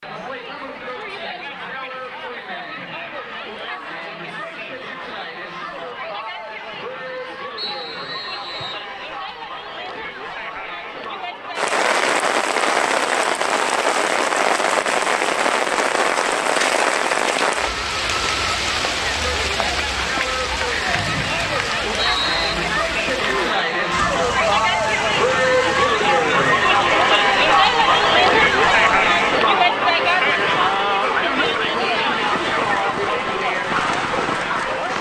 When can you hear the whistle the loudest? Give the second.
22 s.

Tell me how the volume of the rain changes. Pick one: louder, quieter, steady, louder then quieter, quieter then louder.
quieter then louder.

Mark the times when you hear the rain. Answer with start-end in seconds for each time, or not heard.
11.6-34.9.